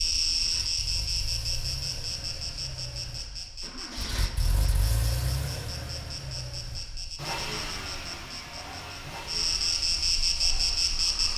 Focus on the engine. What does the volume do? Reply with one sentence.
The loudness of the engine goes up, then down.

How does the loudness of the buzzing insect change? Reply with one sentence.
The volume of the buzzing insect goes down, then up.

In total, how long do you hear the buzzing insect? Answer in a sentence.
You can hear the buzzing insect for 11 seconds altogether.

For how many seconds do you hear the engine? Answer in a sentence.
You can hear the engine for 11 seconds altogether.